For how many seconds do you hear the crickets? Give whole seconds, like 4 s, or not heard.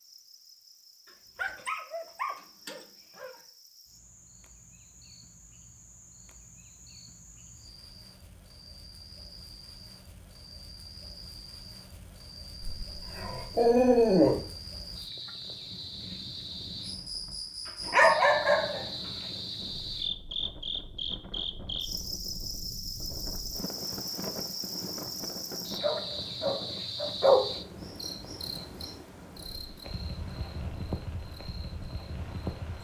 33 s.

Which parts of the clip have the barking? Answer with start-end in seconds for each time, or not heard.
1.4-3.4, 12.6-14.4, 17.9-18.9, 25.8-27.4.